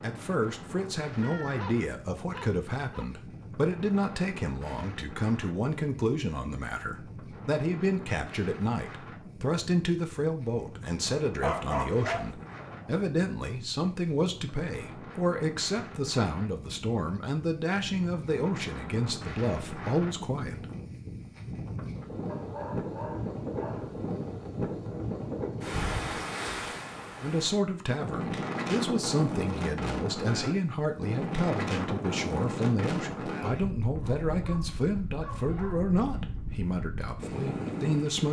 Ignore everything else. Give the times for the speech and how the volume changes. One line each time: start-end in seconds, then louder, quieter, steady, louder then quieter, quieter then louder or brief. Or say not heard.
0.0-20.6 steady
27.2-38.2 steady.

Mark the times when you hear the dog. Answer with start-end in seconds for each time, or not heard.
1.2-3.1, 11.1-13.1, 22.2-24.0, 34.0-36.0.